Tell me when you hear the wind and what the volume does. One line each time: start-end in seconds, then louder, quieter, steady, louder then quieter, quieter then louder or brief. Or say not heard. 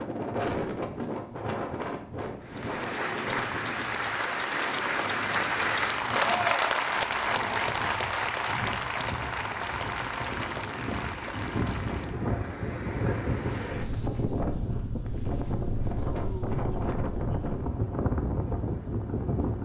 0.0-19.6 quieter then louder.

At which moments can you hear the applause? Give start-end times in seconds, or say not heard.
2.4-12.3.